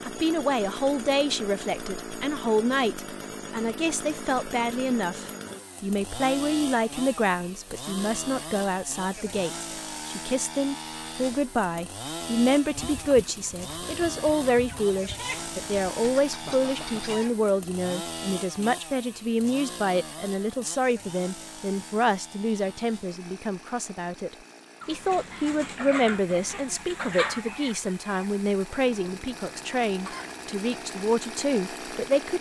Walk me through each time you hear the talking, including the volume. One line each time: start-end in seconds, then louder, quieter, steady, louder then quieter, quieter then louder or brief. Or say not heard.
0.0-32.3 steady.